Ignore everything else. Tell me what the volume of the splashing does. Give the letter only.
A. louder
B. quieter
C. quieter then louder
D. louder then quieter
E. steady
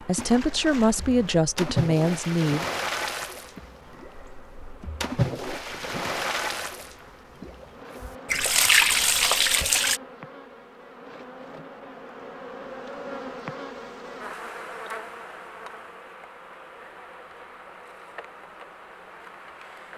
A.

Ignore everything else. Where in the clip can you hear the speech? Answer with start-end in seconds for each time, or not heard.
0.1-2.6.